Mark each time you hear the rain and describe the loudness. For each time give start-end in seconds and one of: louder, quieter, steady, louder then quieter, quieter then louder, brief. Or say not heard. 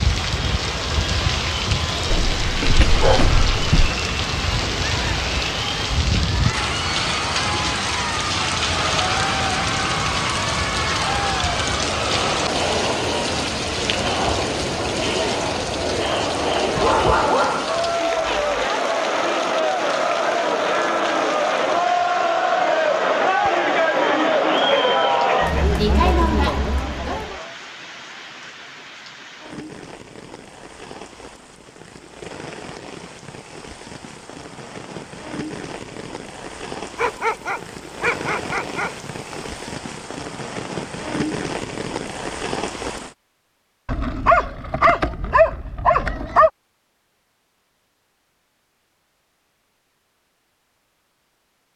0.0-43.1 quieter then louder.